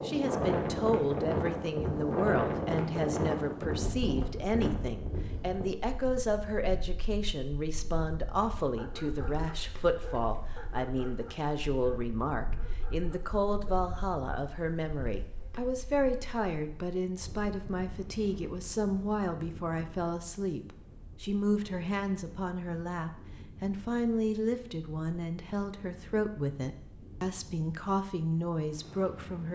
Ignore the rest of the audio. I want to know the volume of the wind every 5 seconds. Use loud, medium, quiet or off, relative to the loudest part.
loud, quiet, quiet, quiet, quiet, quiet.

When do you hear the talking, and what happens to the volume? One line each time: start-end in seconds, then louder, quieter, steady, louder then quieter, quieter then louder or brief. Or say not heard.
0.0-29.5 steady.